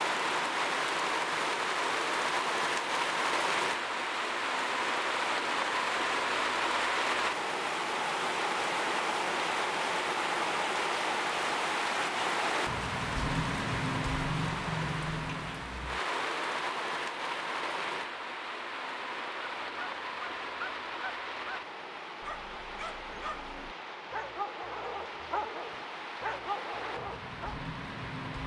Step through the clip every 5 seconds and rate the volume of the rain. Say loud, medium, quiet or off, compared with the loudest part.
loud, loud, loud, medium, medium, medium.